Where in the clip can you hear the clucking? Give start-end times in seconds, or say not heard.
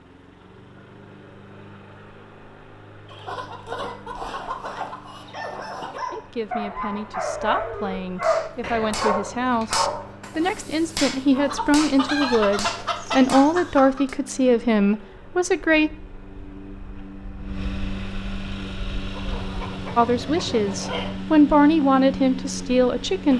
3.0-6.0, 11.4-14.1, 19.1-21.1.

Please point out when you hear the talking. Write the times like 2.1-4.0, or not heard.
6.1-15.9, 19.9-23.3.